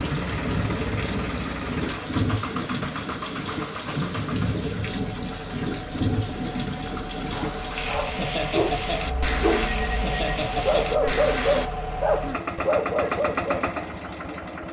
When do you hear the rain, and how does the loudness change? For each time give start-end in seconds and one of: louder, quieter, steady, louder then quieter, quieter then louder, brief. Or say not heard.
0.0-11.7 steady.